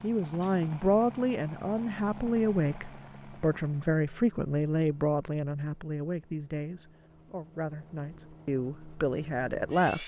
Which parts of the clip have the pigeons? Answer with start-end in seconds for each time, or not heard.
not heard.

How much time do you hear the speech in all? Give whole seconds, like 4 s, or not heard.
10 s.